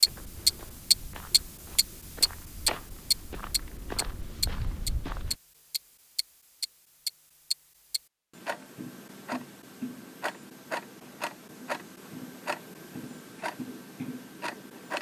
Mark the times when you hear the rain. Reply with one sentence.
The rain can't be heard in this clip.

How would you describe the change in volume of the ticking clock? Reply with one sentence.
The loudness of the ticking clock goes down.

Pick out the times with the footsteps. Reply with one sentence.
The footsteps can be heard from 0.1 to 5.3 s.